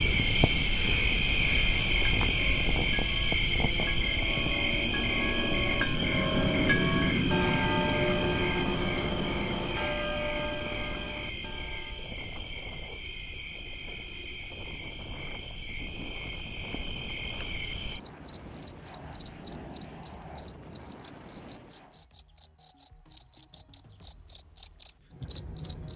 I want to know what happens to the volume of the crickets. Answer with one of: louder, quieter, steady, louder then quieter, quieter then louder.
quieter then louder.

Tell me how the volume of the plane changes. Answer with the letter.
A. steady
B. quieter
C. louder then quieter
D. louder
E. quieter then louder
B.